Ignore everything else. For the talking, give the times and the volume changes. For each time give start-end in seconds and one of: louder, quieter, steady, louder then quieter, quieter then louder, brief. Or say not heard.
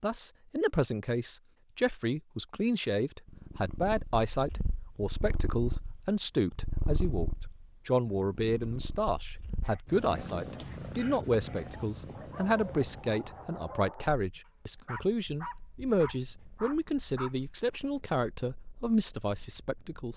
0.0-20.1 steady.